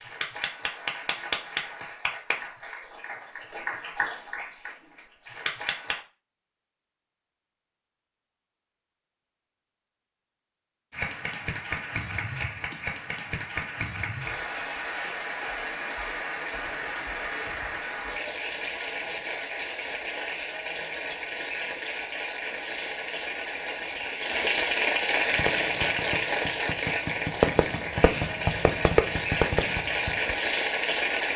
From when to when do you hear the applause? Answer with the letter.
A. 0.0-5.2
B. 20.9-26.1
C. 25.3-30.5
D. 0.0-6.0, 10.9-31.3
D.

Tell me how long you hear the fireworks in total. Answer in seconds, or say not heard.
5 s.